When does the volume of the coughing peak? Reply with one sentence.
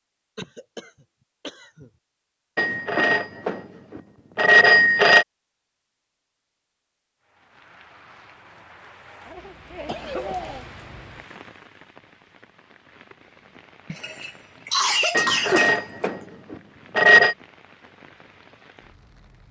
The volume of the coughing peaks at 15 seconds.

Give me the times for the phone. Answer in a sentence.
The phone can be heard from 2.5 to 5.2 s and from 15.1 to 17.4 s.